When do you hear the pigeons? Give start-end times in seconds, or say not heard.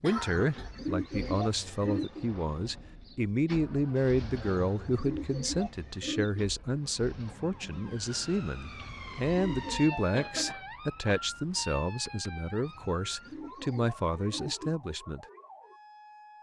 0.1-2.2, 4.3-6.5, 8.7-10.6, 12.6-14.8.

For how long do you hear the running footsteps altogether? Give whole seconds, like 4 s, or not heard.
not heard.